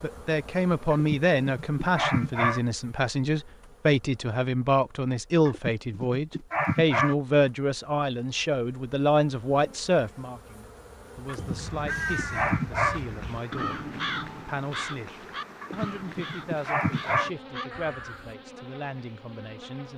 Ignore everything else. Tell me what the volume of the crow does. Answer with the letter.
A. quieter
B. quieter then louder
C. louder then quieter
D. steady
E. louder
A.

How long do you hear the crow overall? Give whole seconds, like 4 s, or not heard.
7 s.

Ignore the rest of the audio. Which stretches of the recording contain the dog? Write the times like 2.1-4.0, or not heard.
0.9-2.6, 5.5-7.2, 11.2-13.0, 15.6-17.3.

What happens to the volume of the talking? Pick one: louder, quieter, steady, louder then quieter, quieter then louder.
quieter.